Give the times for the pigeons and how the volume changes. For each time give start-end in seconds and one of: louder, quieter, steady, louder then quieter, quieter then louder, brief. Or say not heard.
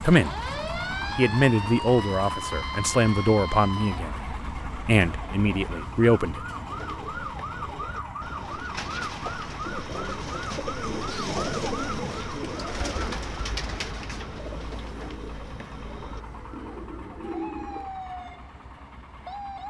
6.7-17.9 louder then quieter.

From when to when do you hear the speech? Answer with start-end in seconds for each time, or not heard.
0.0-0.5, 1.1-6.5.